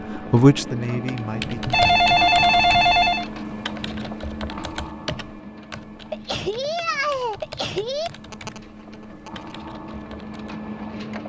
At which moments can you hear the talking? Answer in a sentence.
You can hear the talking from 0.1 to 2.1 s.